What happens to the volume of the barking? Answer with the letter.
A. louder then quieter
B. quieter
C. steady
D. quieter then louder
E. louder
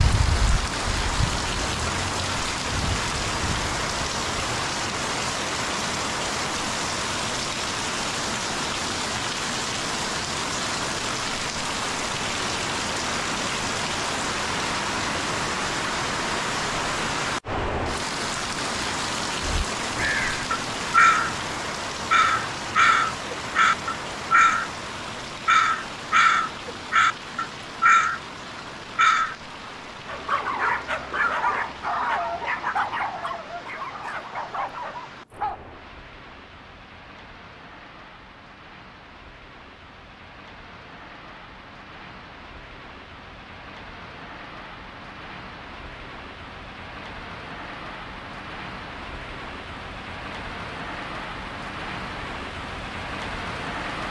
B.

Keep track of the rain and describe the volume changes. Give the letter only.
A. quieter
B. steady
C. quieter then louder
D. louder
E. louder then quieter
C.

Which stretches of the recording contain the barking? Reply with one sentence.
You can hear the barking from 30.1 to 35.5 s.